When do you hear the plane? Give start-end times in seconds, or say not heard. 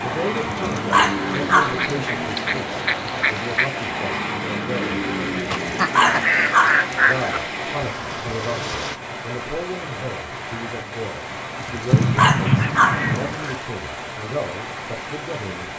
0.0-9.0.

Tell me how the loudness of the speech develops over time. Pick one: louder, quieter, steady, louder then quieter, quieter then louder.
steady.